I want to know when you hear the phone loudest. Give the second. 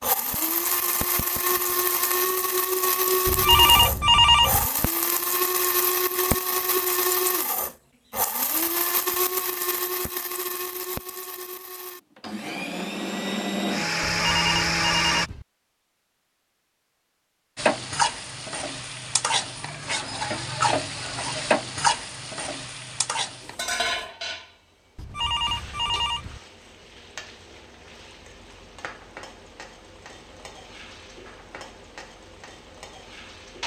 4 s.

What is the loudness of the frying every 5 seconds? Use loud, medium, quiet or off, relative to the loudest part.
off, off, off, loud, loud, quiet, quiet.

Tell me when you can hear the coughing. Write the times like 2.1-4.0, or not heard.
not heard.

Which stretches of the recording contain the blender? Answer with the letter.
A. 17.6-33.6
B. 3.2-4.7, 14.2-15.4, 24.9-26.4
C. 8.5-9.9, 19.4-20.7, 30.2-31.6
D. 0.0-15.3
D.